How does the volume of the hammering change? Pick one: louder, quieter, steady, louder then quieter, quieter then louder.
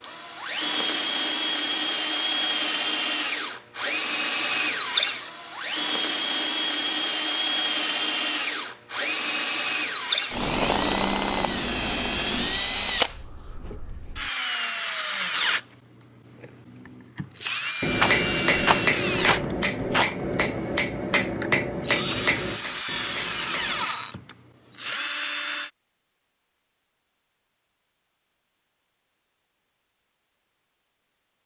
quieter.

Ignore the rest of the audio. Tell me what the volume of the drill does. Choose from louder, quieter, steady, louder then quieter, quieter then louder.
steady.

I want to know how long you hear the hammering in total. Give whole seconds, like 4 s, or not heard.
6 s.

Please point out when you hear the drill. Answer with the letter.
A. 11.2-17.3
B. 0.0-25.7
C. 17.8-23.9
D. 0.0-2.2
B.